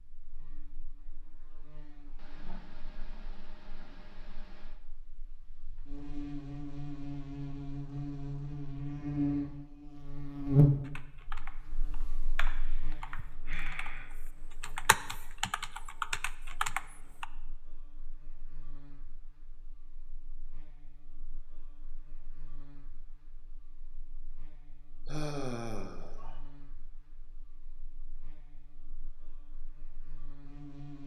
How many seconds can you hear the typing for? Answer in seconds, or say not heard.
6 s.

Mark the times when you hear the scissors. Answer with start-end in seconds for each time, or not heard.
not heard.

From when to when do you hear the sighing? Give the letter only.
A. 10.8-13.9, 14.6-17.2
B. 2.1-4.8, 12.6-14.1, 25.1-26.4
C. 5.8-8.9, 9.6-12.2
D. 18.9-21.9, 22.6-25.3
B.